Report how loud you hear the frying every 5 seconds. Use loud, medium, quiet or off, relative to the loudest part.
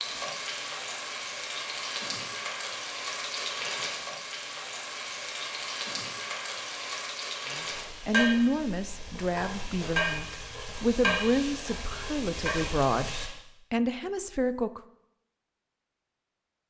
loud, loud, loud, off.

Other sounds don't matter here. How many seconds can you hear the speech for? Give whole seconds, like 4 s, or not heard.
7 s.